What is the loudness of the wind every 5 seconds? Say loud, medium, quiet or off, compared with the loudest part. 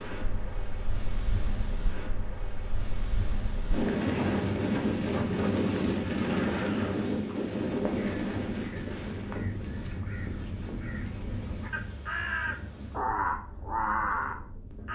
loud, loud, quiet.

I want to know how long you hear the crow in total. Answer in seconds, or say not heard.
9 s.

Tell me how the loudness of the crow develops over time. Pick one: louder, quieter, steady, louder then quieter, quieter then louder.
louder.